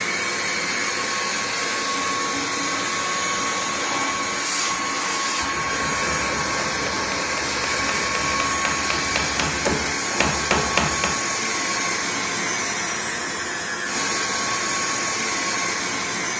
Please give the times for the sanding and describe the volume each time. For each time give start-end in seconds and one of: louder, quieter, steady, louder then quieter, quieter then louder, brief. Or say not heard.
not heard.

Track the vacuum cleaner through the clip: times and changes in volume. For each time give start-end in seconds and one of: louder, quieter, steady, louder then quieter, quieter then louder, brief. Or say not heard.
0.0-16.3 steady.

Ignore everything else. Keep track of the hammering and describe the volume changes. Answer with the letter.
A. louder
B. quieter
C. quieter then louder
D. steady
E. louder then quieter
A.